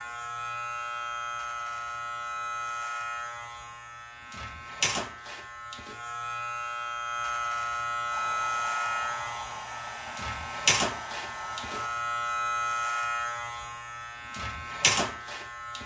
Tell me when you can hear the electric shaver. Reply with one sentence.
The electric shaver can be heard from 0.0 to 15.8 s.